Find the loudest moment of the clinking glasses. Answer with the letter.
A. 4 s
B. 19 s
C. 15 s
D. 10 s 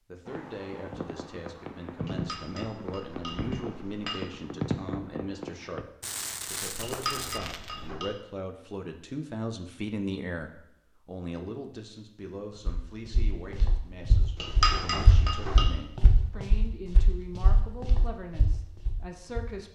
C.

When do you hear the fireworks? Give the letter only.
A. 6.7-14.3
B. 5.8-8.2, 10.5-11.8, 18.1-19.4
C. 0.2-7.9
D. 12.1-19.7
C.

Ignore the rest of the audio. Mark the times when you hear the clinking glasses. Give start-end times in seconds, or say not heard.
2.0-4.5, 6.8-8.1, 14.3-15.7.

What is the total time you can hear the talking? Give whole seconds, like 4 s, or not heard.
20 s.